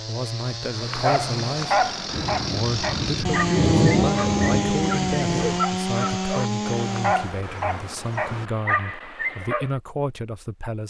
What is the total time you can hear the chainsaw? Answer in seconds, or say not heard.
7 s.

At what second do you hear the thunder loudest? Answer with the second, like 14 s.
4 s.